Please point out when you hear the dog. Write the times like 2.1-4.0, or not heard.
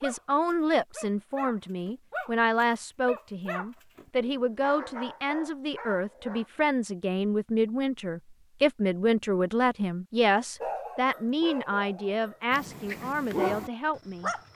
0.0-6.5, 10.6-14.5.